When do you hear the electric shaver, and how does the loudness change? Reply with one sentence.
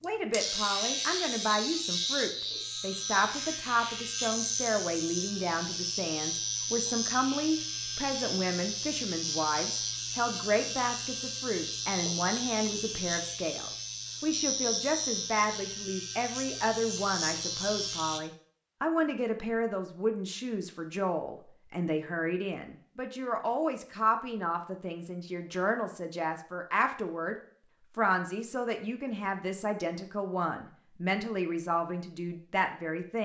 The electric shaver can be heard from 0.0 to 18.2 s, at a steady volume.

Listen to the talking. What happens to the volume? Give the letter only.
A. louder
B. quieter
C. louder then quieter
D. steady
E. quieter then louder
D.